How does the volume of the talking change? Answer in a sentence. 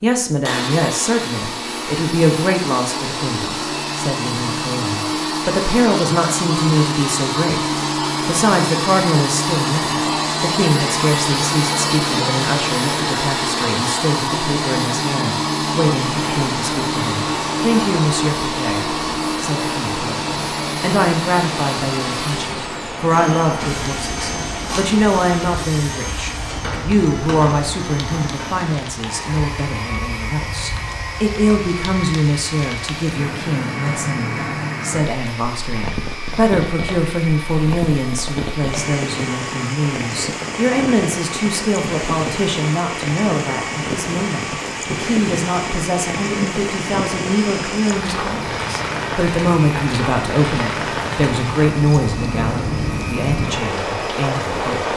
The loudness of the talking stays about the same.